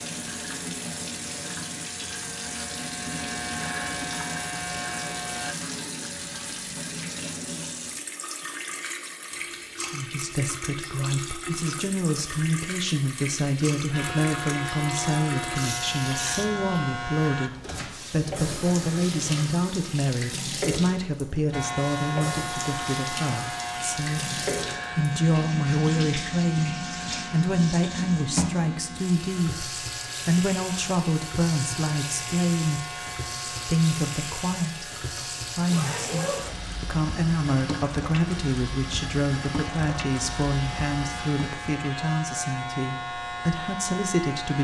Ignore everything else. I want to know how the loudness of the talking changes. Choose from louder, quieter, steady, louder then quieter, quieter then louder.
steady.